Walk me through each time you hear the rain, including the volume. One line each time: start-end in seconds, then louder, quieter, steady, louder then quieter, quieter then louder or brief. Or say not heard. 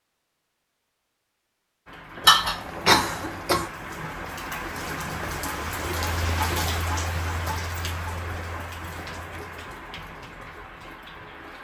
1.9-11.5 louder then quieter.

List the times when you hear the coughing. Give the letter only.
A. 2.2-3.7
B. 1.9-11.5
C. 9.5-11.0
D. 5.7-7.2
A.